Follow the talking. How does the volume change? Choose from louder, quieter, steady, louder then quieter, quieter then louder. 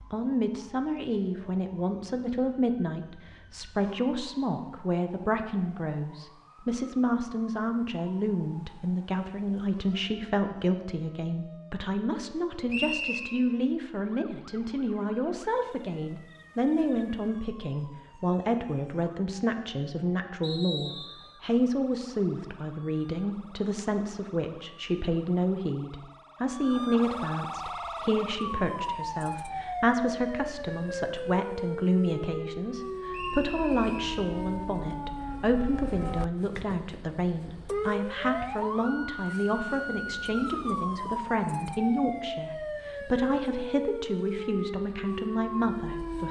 steady.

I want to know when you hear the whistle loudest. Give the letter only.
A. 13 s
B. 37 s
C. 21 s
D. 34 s
A.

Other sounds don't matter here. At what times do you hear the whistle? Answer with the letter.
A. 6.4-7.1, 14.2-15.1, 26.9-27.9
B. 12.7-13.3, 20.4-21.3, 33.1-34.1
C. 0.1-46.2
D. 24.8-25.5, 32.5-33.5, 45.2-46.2
B.